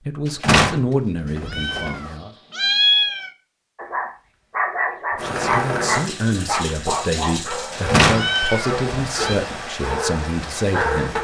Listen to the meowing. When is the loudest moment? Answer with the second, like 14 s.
3 s.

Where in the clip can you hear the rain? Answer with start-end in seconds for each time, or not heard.
5.2-11.1.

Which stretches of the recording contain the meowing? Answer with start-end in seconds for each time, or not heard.
1.4-3.3, 8.1-9.3.